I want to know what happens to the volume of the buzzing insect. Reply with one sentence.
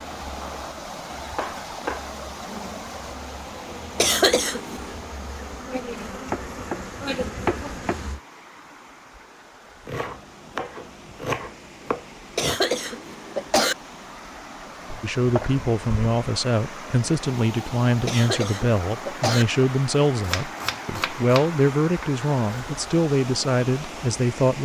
The loudness of the buzzing insect goes up.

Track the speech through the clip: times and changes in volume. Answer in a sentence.
You can hear the speech from 15.0 to 24.6 s, at a steady volume.